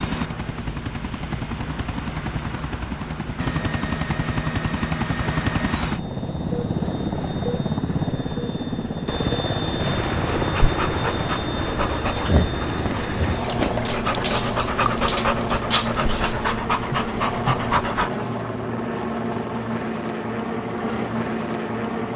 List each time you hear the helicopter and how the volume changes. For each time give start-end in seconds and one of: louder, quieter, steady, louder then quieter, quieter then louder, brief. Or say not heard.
0.0-22.1 steady.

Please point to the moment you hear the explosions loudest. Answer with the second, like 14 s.
10 s.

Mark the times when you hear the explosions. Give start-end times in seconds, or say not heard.
9.8-11.2.